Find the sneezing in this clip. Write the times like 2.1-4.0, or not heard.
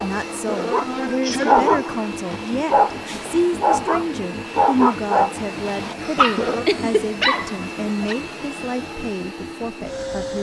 0.3-2.1, 6.0-6.7.